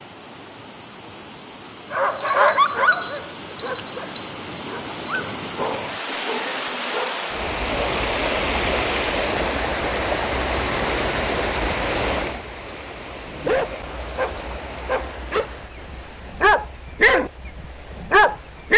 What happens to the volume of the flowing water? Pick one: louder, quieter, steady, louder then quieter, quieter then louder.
louder then quieter.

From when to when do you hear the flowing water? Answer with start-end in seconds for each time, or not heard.
0.0-18.7.